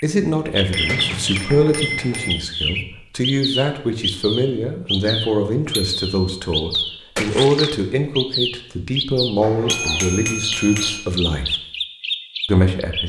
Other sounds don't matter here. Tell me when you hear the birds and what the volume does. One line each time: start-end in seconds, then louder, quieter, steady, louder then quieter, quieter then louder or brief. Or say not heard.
0.0-13.0 steady.